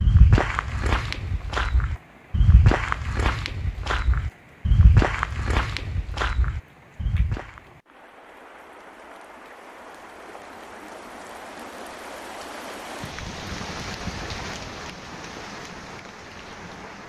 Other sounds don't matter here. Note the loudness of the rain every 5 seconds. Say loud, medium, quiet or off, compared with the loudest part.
quiet, medium, loud, loud.